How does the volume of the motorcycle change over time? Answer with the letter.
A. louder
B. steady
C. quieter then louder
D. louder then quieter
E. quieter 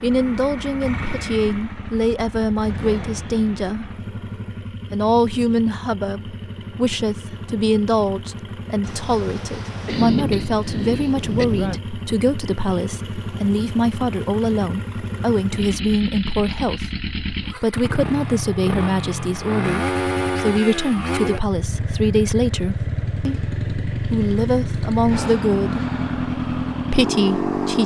A.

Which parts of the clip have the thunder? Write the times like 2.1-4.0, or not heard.
8.8-11.8.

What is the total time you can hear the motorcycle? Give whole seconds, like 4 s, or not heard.
28 s.